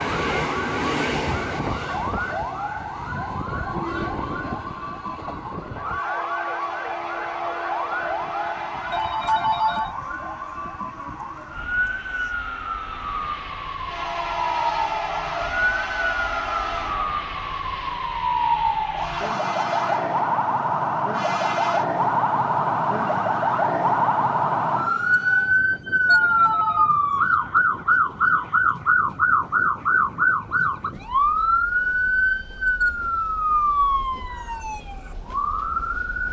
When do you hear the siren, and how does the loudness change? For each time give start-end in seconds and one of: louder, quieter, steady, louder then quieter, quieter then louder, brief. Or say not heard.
0.0-36.2 louder.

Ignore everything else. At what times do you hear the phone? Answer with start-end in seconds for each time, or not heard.
8.9-9.9, 26.1-26.9.